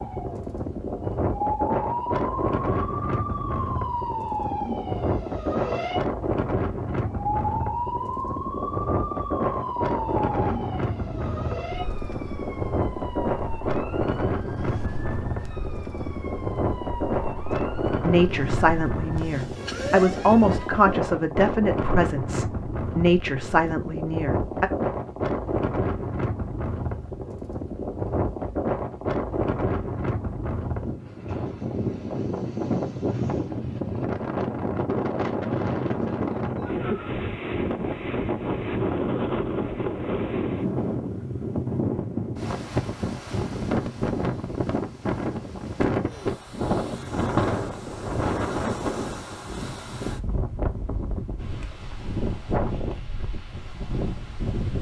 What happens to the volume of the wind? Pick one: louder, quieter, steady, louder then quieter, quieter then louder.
steady.